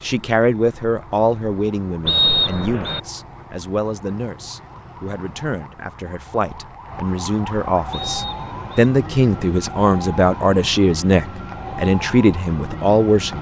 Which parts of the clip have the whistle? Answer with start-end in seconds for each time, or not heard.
2.0-3.0, 7.9-8.8.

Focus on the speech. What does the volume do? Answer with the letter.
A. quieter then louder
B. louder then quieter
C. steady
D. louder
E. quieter
A.